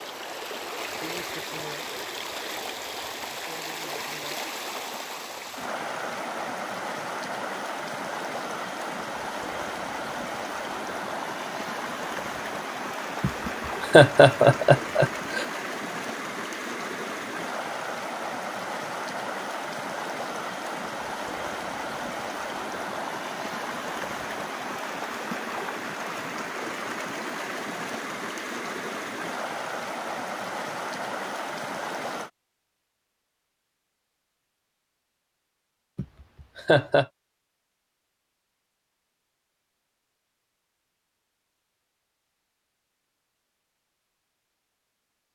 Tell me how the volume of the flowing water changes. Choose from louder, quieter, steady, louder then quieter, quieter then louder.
steady.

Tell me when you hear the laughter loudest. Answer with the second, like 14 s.
14 s.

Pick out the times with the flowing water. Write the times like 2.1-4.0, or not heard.
0.0-32.3.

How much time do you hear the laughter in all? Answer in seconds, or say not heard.
3 s.